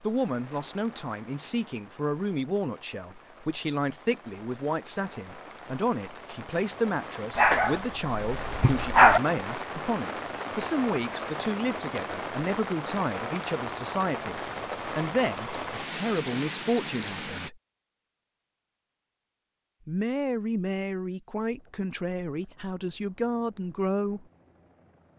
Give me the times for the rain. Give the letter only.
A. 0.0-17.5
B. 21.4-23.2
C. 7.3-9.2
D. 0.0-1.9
A.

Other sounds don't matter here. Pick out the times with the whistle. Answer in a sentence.
The whistle can't be heard in this clip.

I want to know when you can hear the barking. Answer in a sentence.
You can hear the barking from 7.3 to 9.2 s.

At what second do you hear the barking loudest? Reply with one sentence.
The volume of the barking peaks at 9 seconds.